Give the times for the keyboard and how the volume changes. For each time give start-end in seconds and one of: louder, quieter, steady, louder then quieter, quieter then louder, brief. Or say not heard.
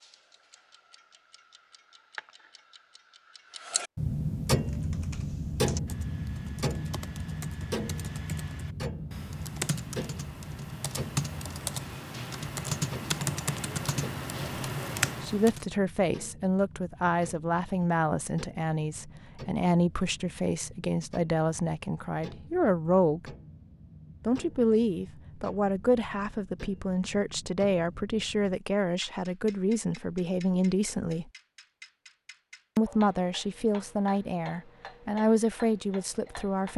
4.5-15.7 louder.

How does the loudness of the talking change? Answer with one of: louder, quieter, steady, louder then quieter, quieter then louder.
steady.